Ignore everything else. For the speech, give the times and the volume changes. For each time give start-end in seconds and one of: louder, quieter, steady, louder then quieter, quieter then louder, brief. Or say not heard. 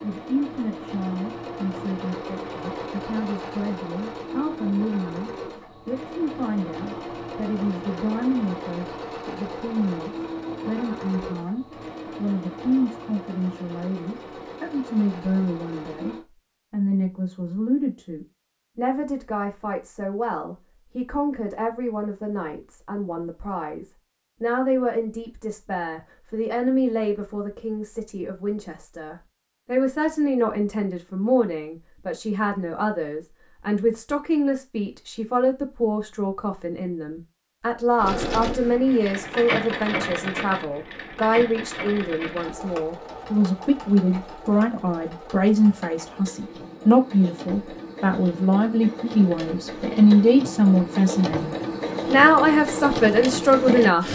0.0-54.0 louder.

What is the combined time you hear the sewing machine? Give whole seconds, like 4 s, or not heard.
32 s.